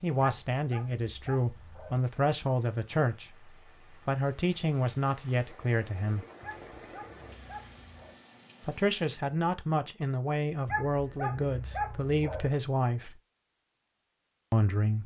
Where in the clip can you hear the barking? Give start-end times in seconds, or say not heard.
0.2-2.0, 6.4-8.2, 10.7-12.5.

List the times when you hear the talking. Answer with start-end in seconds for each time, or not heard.
0.0-6.2, 8.7-13.2, 14.5-15.0.